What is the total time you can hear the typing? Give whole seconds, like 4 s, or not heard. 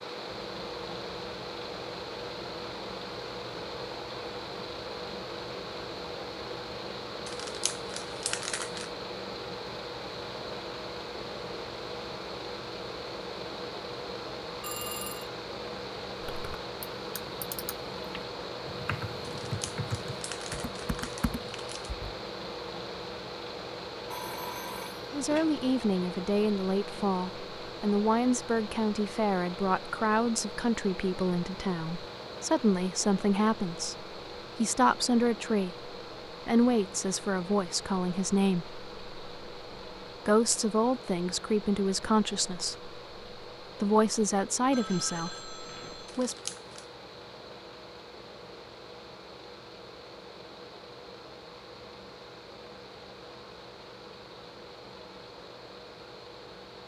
6 s.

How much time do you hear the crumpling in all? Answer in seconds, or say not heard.
5 s.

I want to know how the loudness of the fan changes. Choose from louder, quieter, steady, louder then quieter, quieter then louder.
quieter.